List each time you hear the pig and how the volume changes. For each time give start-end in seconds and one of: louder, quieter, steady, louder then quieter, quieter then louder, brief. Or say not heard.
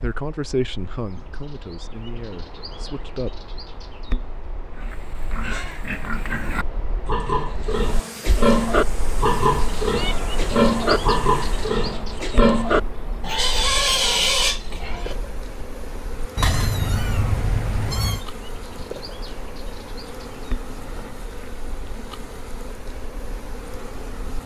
4.8-15.2 louder.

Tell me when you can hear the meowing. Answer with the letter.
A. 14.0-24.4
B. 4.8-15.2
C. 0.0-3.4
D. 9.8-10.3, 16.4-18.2
D.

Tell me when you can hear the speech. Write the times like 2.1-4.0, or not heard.
0.0-3.4.